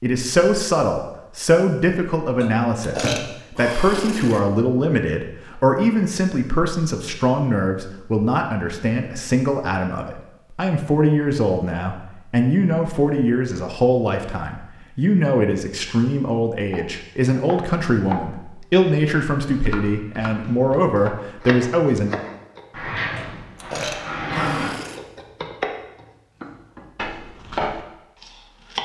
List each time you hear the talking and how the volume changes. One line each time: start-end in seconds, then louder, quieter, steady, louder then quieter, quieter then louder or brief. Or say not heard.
0.0-22.1 steady.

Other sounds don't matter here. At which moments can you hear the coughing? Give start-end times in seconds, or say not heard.
not heard.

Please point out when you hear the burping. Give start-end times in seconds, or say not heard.
2.4-4.4, 23.1-25.0.